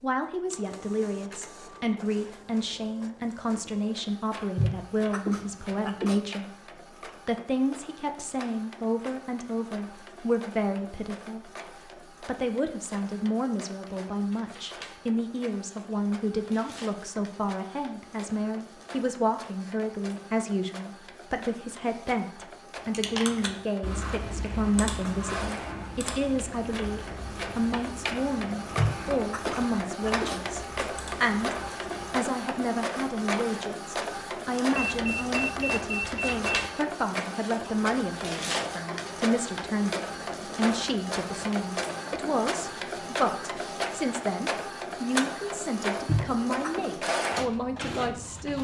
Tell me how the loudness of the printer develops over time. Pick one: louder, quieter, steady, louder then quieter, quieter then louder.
louder.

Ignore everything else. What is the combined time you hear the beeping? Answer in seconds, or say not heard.
2 s.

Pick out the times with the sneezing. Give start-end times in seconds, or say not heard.
4.5-6.2, 28.8-30.4, 46.0-46.9.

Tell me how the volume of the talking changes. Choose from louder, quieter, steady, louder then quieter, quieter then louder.
steady.